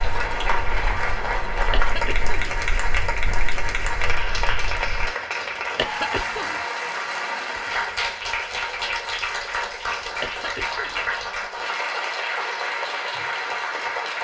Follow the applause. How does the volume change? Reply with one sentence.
The loudness of the applause stays about the same.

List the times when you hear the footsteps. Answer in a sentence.
You can hear the footsteps from 0.0 to 5.1 s.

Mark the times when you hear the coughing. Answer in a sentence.
You can hear the coughing from 1.7 to 2.3 s, from 5.8 to 6.6 s and from 10.2 to 11.1 s.